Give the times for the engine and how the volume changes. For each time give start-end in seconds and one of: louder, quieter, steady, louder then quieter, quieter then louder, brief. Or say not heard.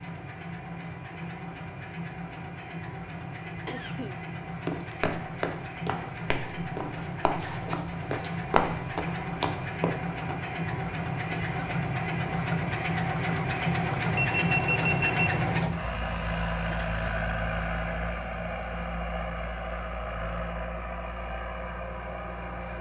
0.0-22.7 louder then quieter.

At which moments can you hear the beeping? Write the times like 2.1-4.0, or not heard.
14.2-15.4.